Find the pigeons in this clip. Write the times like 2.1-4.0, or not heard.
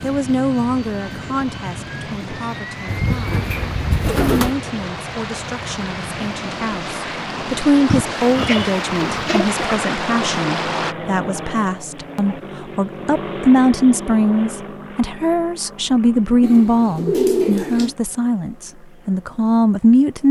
2.9-4.5, 7.8-9.8, 16.4-17.9.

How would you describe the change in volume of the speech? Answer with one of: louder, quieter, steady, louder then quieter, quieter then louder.
louder.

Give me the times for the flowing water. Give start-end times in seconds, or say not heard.
0.1-10.9.